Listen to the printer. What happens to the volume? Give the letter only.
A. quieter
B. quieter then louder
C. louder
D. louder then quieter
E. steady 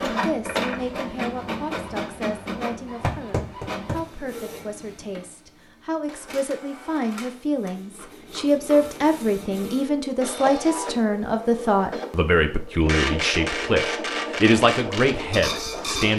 B.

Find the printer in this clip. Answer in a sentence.
The printer can be heard from 0.0 to 16.1 s.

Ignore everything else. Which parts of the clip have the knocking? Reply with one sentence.
The knocking can be heard from 3.0 to 4.0 s.